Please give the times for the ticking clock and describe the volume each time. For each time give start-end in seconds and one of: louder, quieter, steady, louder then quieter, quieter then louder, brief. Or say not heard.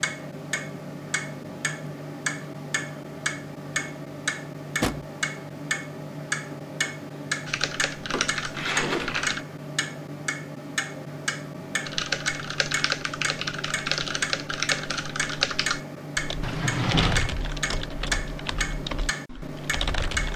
0.0-20.3 steady.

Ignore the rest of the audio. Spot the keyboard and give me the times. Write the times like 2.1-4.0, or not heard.
7.5-9.4, 11.8-20.3.